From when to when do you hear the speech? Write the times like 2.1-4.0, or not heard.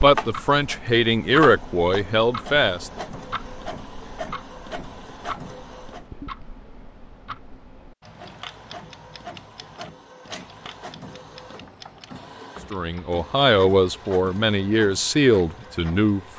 0.0-2.9, 12.7-16.3.